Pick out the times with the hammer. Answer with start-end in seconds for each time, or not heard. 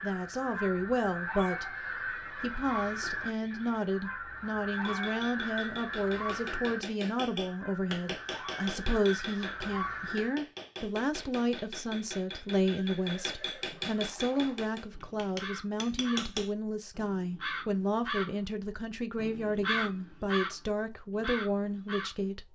4.7-16.6.